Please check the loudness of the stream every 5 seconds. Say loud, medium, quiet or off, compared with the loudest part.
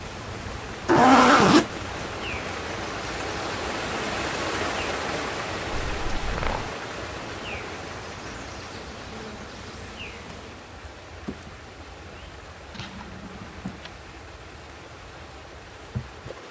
loud, loud, quiet, quiet.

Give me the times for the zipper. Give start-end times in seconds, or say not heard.
0.8-2.1, 5.7-6.7, 12.7-13.9.